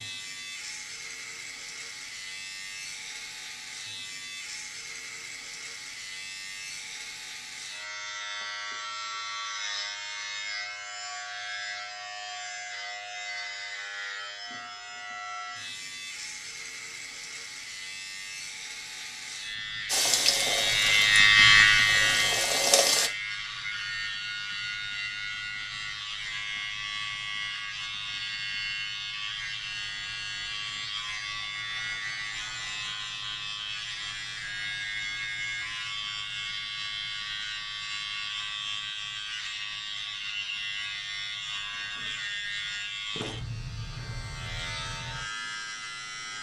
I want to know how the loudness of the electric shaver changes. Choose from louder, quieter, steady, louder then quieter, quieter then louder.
louder then quieter.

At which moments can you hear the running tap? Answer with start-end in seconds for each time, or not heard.
19.9-23.1.